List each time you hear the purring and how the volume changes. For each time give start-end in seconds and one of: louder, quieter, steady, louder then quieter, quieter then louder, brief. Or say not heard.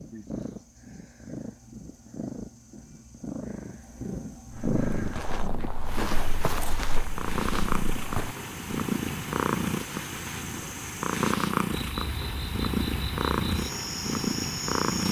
0.0-15.0 louder.